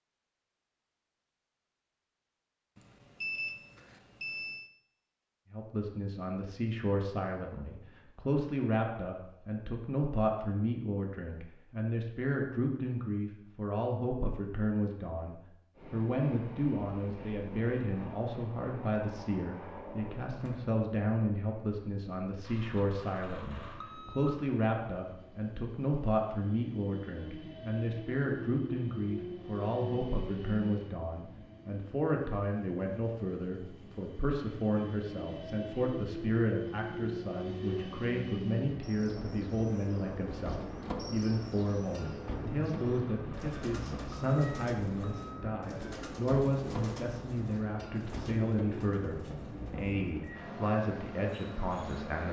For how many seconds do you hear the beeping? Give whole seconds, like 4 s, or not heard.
7 s.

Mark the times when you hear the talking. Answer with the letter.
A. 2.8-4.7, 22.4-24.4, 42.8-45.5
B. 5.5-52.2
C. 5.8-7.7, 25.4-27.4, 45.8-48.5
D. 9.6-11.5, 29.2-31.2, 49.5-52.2
B.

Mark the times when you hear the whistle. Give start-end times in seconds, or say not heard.
not heard.